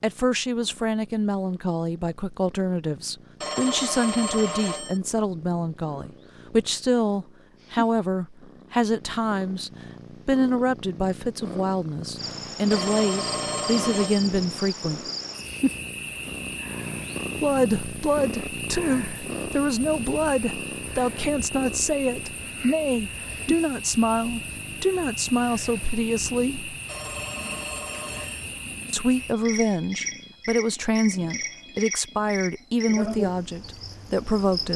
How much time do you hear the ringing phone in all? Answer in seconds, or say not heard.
5 s.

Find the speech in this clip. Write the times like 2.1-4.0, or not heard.
0.0-15.0, 17.4-26.7, 28.9-34.7.